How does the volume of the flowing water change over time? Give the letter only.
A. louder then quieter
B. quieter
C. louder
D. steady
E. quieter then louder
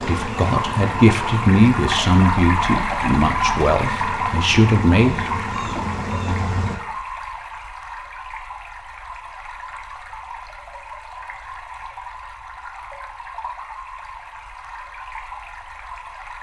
B.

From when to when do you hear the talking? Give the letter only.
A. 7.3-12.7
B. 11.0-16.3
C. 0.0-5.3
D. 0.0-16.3
C.